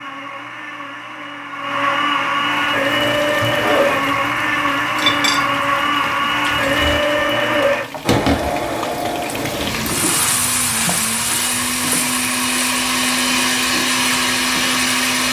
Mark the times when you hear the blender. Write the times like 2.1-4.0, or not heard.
0.0-15.2.